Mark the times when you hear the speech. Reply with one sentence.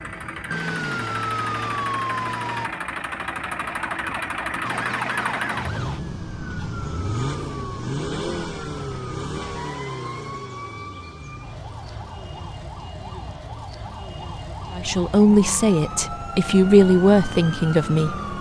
You can hear the speech from 14.7 to 18.3 s.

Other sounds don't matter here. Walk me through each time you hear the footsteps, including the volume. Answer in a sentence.
You can't hear the footsteps here.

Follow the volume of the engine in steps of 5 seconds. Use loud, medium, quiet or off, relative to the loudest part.
loud, loud, medium, off.